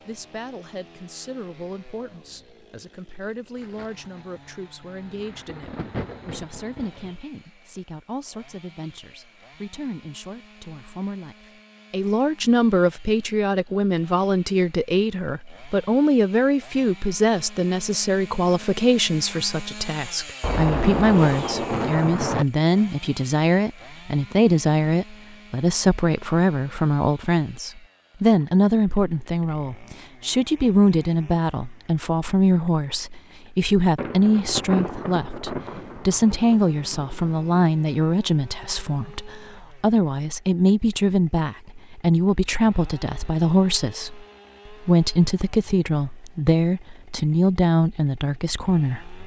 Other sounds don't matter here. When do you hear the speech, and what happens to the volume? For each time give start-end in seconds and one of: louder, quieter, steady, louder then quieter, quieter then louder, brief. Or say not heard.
0.1-49.2 louder.